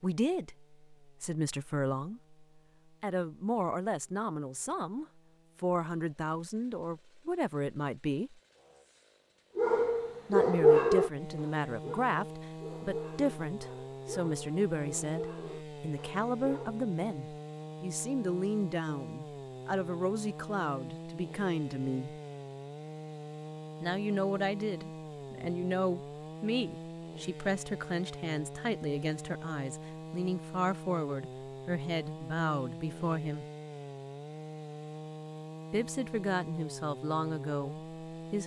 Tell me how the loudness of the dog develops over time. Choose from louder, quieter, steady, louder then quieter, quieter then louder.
quieter.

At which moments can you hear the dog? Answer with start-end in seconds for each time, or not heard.
9.6-16.9.